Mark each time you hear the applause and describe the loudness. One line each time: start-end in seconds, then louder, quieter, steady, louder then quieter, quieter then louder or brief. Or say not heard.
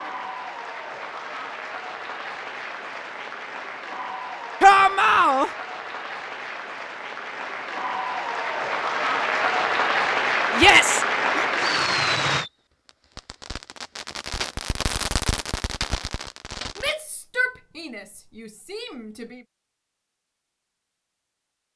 0.0-12.4 louder.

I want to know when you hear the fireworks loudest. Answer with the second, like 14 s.
15 s.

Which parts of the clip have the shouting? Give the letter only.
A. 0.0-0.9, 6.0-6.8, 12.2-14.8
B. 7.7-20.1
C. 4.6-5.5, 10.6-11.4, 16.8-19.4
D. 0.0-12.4
C.